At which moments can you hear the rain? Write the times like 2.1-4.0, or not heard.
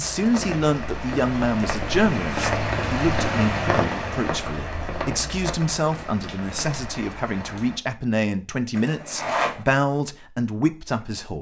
0.0-7.8.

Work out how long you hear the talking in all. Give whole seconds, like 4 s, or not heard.
11 s.